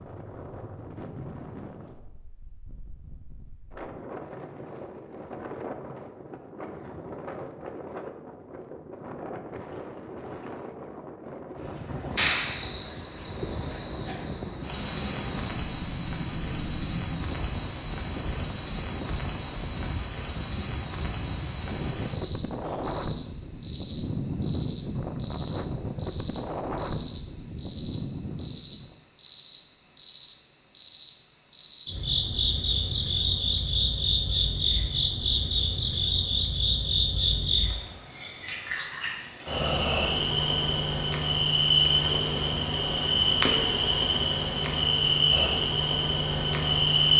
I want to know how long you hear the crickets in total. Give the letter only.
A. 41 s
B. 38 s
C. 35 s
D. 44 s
C.